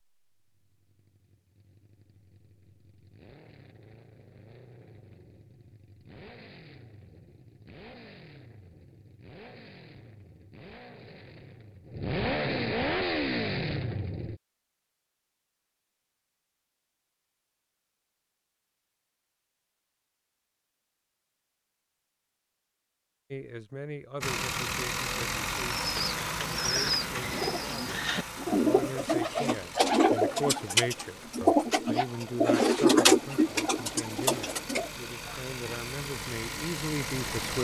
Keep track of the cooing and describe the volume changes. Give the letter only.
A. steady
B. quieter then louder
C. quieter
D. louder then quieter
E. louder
D.